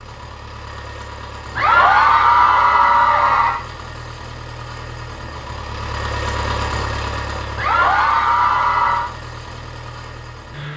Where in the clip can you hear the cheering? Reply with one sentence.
The cheering can be heard from 1.6 to 3.6 s and from 7.5 to 9.1 s.